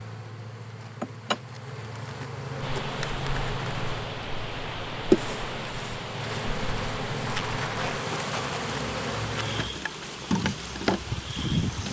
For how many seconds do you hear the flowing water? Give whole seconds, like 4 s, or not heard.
9 s.